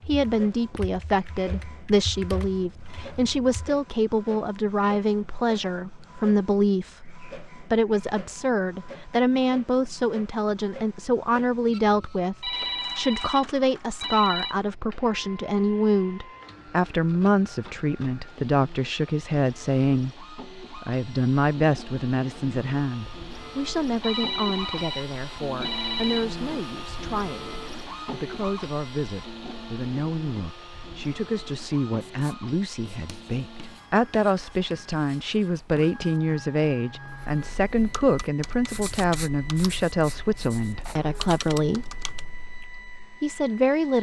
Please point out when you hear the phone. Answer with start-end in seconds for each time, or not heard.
12.4-14.6, 24.0-26.2.